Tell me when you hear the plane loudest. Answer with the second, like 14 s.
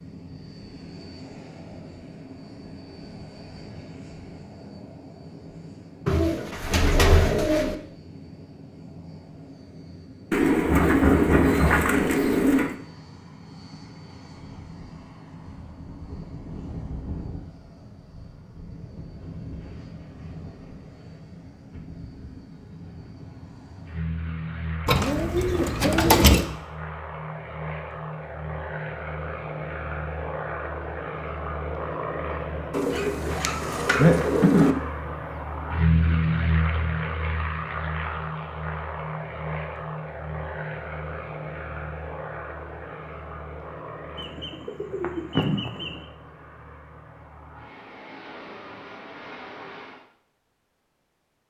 36 s.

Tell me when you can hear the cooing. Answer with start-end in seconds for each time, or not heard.
6.0-7.8, 10.3-12.8, 24.9-26.4, 32.7-34.8, 44.1-46.0.